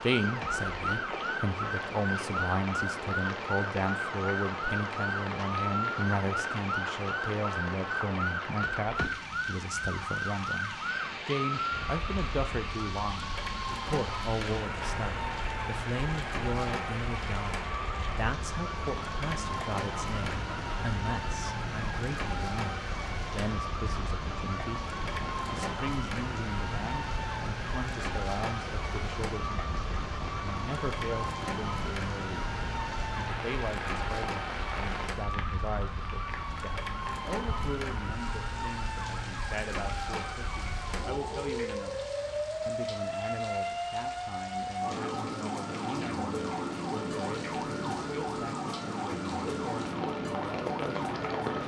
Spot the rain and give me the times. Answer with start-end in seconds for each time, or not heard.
0.0-51.6.